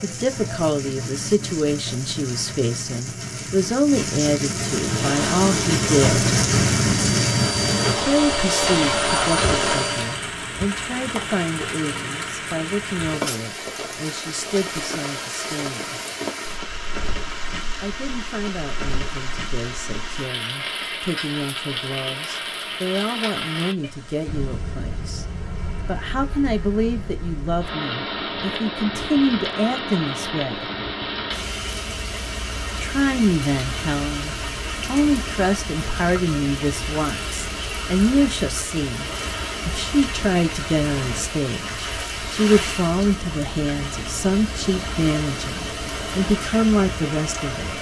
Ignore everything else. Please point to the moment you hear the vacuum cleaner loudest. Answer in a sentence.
The volume of the vacuum cleaner peaks at 9 seconds.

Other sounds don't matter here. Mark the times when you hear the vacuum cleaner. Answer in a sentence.
You can hear the vacuum cleaner from 4.6 to 10.2 s.